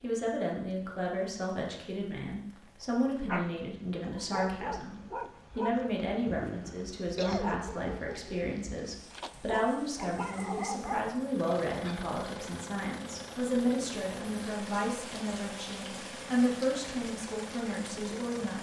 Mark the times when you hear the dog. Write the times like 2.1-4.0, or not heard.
3.2-11.2.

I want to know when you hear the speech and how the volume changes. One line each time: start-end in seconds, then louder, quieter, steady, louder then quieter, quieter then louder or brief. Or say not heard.
0.0-18.5 steady.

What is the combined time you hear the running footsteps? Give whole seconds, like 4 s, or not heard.
not heard.